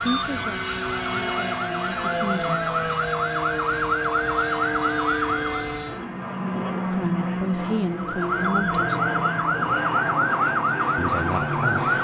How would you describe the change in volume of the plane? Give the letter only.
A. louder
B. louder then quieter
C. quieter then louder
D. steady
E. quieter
D.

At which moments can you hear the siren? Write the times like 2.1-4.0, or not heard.
0.0-5.8, 7.9-12.0.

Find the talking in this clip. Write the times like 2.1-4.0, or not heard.
0.0-2.5, 6.9-8.9, 10.9-11.8.